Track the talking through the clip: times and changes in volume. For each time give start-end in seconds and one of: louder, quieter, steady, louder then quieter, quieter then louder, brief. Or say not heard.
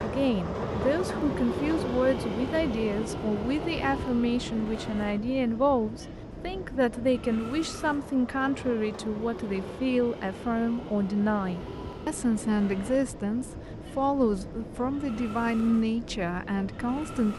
0.0-17.3 steady.